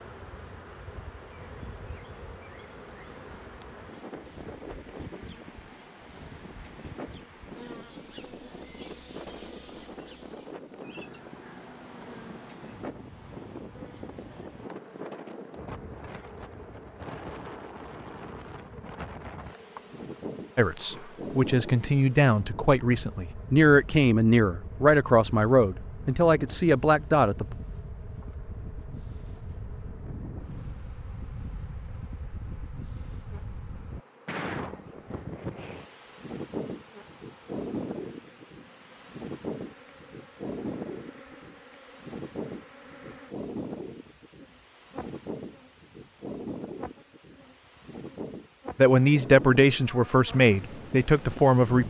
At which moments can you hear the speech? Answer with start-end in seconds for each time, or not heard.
20.6-27.6, 48.8-51.8.